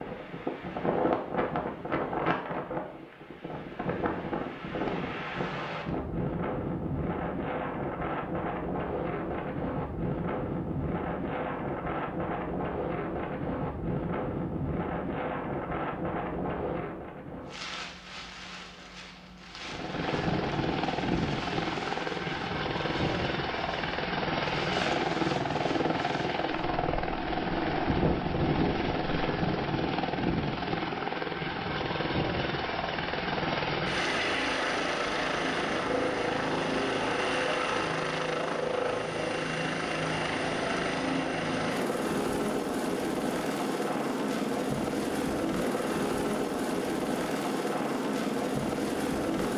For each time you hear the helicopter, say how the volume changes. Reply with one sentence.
You can hear the helicopter from 19.6 to 49.5 s, at a steady volume.